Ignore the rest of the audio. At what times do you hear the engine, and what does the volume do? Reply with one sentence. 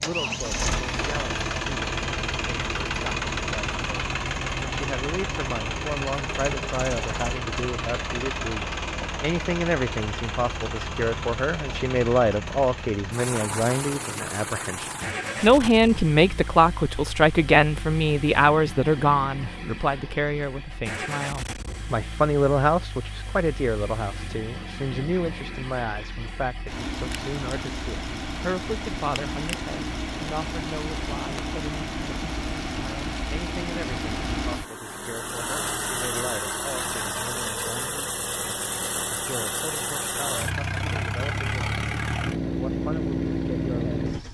The engine can be heard from 0.0 to 44.2 s, getting quieter then louder.